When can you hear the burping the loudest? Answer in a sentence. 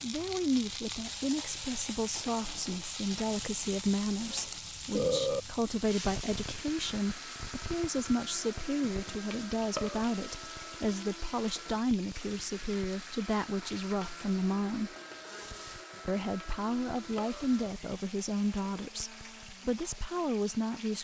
The loudest moment of the burping is at 5 seconds.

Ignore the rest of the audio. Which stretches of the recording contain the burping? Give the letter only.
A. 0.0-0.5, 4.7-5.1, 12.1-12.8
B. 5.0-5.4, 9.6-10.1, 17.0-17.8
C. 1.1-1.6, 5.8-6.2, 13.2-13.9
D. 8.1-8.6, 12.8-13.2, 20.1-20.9
B.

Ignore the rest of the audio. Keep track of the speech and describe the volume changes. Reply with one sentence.
The loudness of the speech stays about the same.